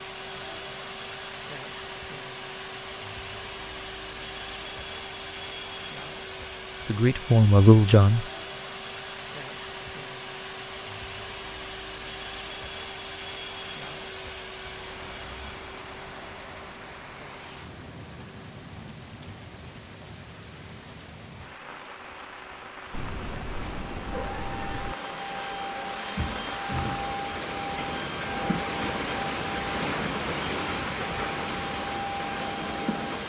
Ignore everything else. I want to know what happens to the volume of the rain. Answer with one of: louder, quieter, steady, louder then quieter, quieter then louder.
louder.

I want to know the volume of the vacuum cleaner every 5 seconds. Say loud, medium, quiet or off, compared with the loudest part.
loud, loud, loud, medium, medium, loud, loud.